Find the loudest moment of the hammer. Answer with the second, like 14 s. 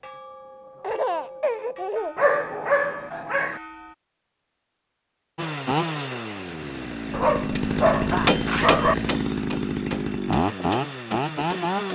8 s.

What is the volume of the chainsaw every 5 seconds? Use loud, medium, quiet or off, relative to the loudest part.
off, loud, loud.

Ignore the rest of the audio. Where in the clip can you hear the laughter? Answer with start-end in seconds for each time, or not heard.
0.8-2.3, 7.9-8.3.